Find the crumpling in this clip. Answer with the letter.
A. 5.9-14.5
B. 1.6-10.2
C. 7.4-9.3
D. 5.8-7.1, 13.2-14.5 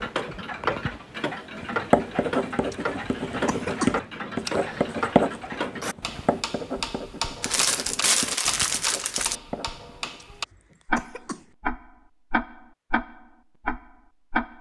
C.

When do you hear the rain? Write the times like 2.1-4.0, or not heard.
not heard.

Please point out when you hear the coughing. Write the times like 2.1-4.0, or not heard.
2.7-4.0, 10.2-11.5.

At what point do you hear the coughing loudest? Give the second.
4 s.